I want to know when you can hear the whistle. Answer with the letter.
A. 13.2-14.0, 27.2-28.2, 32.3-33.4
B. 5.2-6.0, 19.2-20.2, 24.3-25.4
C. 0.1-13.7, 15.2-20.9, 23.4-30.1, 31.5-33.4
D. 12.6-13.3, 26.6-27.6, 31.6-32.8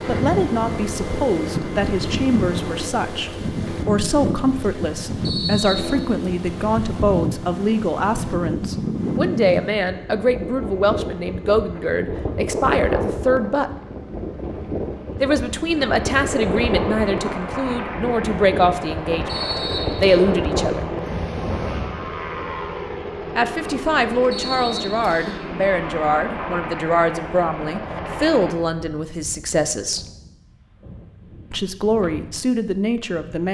B.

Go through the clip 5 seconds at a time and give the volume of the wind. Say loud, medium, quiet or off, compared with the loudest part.
loud, loud, loud, loud, loud, quiet, quiet.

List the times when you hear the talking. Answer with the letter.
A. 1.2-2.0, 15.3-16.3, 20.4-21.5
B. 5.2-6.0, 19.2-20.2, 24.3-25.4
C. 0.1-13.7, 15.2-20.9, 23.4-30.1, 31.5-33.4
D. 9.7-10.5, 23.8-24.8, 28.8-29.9
C.